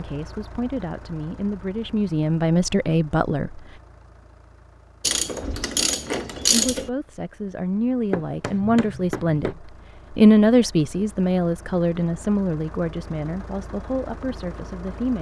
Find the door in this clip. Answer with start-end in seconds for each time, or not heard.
not heard.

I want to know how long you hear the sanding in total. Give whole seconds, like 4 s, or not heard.
not heard.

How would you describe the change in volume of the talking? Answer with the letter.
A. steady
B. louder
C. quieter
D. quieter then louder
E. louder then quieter
E.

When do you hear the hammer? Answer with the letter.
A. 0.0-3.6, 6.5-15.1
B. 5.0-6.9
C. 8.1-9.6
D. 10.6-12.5
C.